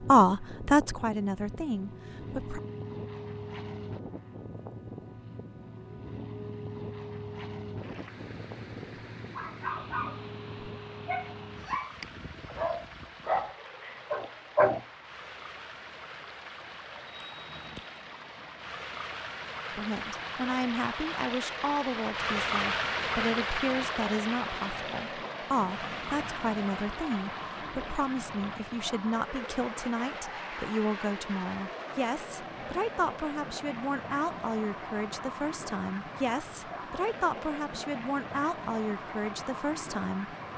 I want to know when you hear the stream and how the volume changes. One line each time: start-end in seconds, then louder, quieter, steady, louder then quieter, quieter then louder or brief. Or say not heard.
7.8-40.5 louder then quieter.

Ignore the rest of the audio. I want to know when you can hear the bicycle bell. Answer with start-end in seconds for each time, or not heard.
17.1-18.0.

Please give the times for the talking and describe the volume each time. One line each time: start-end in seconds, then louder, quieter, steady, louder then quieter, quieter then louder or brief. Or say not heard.
0.1-2.6 brief
19.8-40.4 steady.